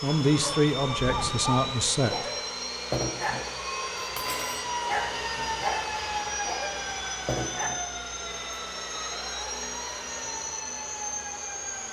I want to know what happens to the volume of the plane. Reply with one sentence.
The volume of the plane stays about the same.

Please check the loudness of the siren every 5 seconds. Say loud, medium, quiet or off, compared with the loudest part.
loud, loud, medium.